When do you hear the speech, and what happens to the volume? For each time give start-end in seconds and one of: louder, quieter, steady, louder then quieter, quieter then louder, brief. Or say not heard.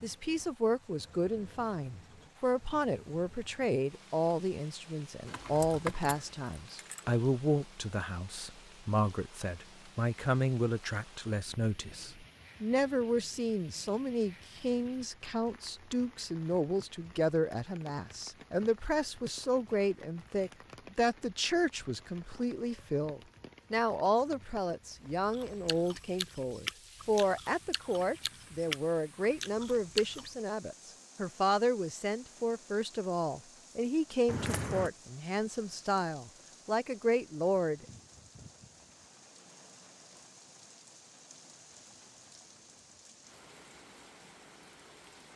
0.0-37.9 steady.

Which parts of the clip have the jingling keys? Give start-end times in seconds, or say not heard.
5.2-7.1, 34.2-34.9.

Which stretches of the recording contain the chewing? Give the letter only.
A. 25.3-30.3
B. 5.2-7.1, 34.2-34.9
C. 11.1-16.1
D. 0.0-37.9
A.